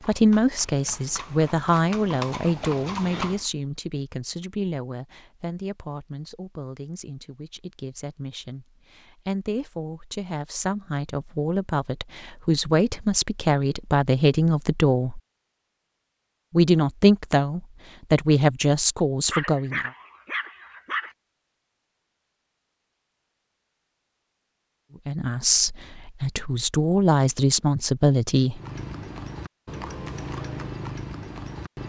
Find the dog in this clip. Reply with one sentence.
The dog can be heard from 19.3 to 21.1 s.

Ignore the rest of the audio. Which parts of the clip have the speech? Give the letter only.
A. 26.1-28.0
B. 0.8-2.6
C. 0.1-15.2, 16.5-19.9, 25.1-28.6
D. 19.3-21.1
C.